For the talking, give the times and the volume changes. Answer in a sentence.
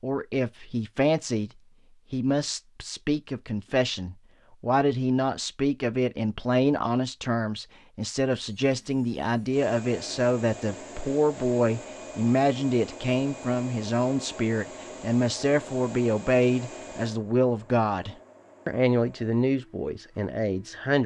The talking can be heard briefly from 0.0 to 1.5 s; and from 2.1 to 21.0 s, at a steady volume.